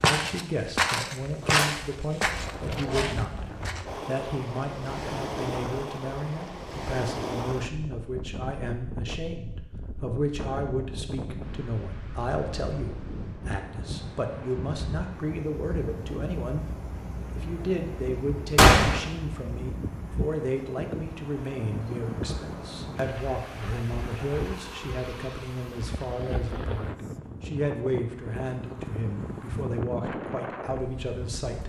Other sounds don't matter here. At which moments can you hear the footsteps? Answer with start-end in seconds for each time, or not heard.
0.0-3.9.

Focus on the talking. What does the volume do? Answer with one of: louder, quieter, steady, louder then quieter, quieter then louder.
steady.